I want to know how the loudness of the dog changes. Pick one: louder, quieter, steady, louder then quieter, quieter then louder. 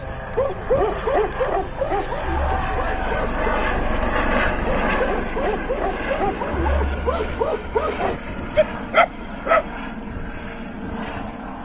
quieter then louder.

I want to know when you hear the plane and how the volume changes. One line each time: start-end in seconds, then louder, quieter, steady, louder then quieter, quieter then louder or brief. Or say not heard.
0.0-11.5 louder then quieter.